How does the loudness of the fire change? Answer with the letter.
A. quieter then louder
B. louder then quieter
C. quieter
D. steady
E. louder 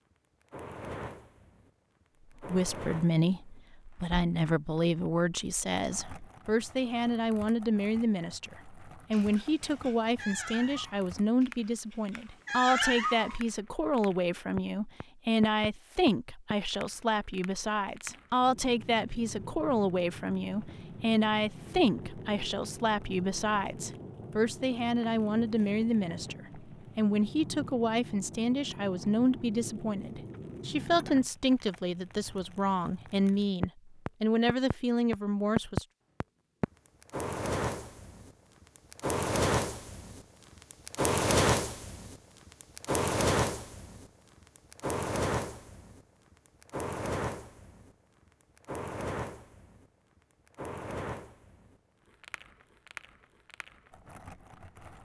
B.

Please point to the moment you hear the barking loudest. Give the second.
13 s.